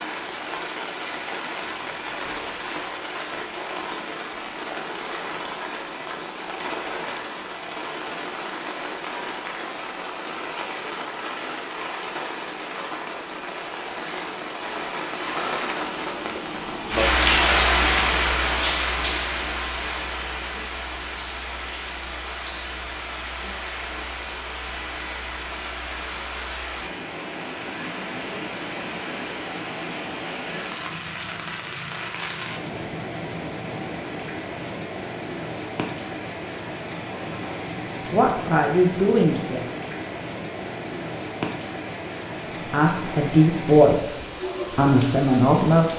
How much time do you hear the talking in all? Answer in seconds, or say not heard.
5 s.